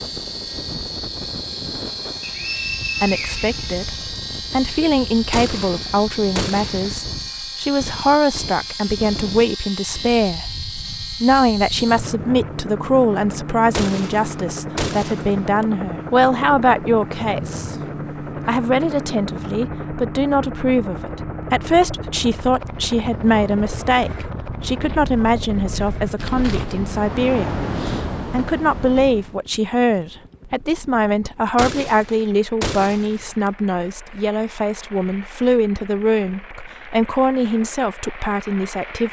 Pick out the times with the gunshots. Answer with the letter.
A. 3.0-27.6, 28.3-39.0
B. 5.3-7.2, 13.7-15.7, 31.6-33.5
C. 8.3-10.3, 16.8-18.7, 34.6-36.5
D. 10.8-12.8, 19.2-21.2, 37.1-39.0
B.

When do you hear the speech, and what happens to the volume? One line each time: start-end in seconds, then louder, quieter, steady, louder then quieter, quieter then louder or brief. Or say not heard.
3.0-27.6 steady
28.3-39.0 steady.